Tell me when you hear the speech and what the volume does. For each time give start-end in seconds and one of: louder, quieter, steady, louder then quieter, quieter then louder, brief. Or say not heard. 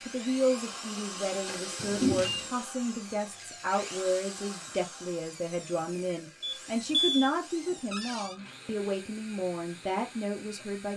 0.1-10.9 steady.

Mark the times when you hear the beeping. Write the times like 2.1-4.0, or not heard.
1.8-2.4, 6.4-7.3.